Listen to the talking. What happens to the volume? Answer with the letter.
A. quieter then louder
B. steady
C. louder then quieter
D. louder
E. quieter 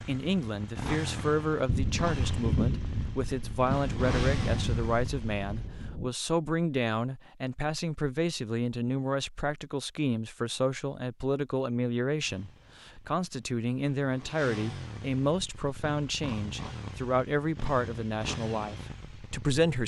B.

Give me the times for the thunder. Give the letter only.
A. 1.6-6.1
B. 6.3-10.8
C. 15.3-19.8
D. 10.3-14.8
A.